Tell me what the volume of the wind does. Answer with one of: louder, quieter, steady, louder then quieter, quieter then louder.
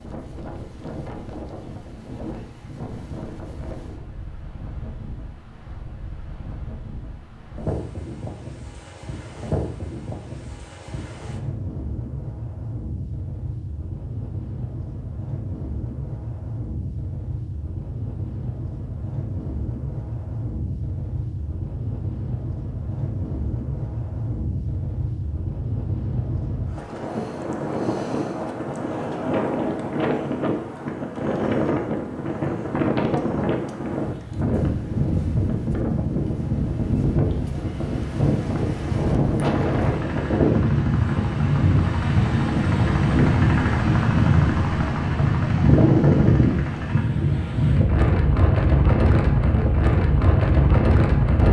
louder.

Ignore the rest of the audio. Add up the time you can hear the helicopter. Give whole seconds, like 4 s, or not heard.
8 s.